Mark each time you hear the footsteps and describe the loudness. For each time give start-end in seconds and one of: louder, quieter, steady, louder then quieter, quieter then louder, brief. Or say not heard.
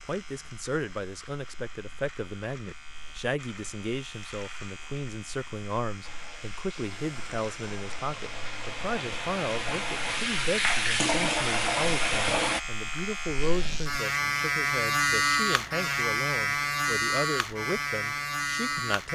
not heard.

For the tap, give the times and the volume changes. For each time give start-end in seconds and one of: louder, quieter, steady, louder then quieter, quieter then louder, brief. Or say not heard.
6.0-12.6 louder.